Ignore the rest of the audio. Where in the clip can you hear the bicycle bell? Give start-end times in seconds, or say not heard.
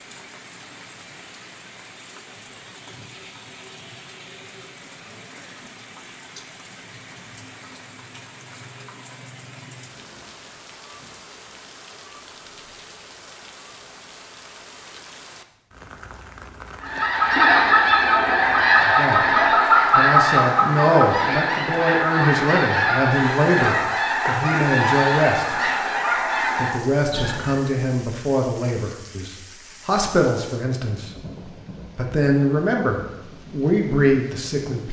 not heard.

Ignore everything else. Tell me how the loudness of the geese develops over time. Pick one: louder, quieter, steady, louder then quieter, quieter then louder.
quieter.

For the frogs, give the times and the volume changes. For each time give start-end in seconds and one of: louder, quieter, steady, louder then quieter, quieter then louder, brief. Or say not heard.
not heard.